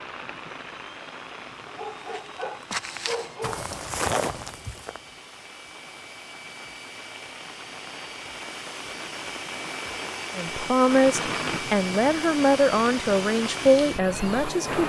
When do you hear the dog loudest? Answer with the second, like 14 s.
3 s.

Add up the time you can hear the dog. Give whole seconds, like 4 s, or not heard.
2 s.